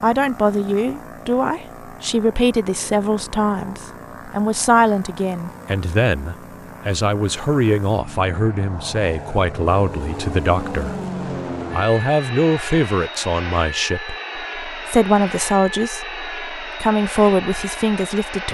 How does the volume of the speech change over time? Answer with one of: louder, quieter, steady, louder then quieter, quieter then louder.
steady.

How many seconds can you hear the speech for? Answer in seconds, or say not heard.
18 s.